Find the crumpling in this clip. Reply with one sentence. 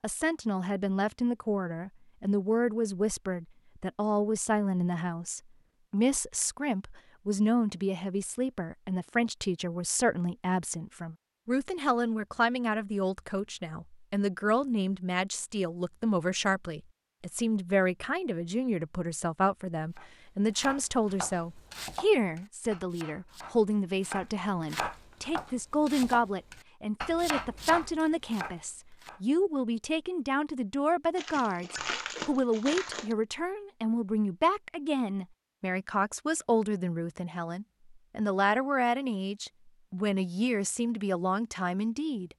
The crumpling can be heard from 31.1 to 33.1 s.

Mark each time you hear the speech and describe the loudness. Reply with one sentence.
You can hear the speech from 0.0 to 42.3 s, at a steady volume.